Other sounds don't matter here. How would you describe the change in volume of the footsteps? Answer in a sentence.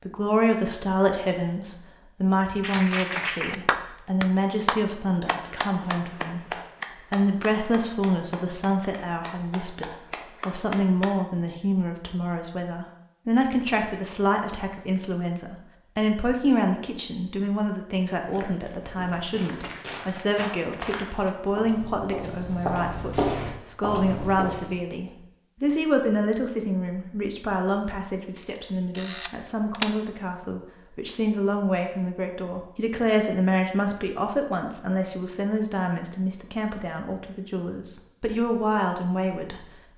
The volume of the footsteps goes up.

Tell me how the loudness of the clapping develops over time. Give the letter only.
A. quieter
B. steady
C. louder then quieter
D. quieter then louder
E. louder
D.